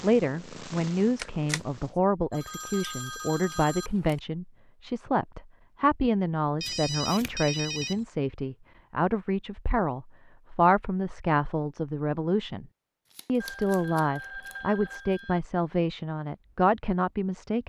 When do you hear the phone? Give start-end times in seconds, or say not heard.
2.3-4.2, 6.6-8.1, 13.4-15.4.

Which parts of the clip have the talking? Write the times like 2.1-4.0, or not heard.
0.0-12.7, 13.2-17.6.